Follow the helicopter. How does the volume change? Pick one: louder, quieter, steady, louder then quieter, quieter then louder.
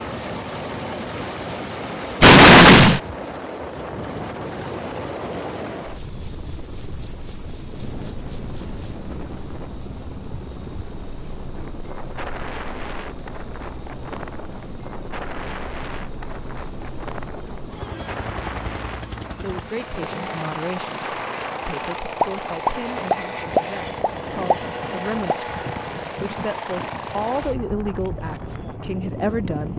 quieter then louder.